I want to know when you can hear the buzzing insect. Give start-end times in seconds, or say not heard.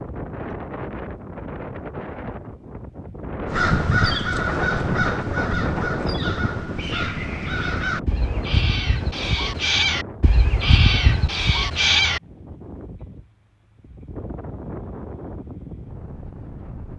not heard.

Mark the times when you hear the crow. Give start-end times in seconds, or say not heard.
3.5-12.2.